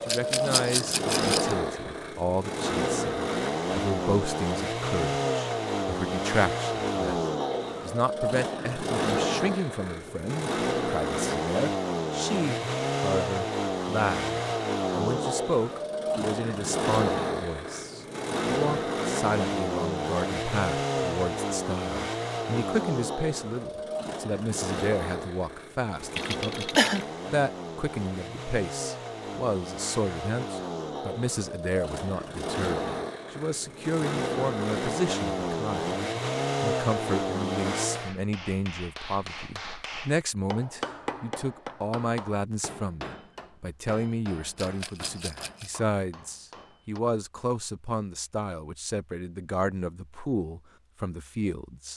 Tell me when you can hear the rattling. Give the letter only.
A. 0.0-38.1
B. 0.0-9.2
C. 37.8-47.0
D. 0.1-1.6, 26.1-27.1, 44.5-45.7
D.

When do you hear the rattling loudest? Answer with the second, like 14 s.
1 s.